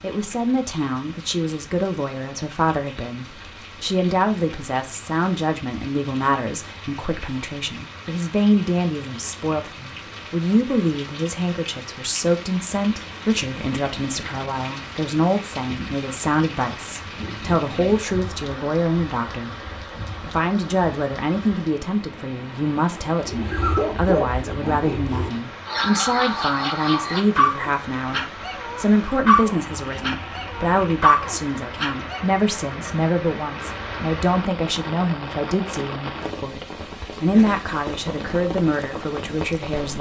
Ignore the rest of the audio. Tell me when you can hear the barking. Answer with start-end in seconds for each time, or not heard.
23.2-32.2.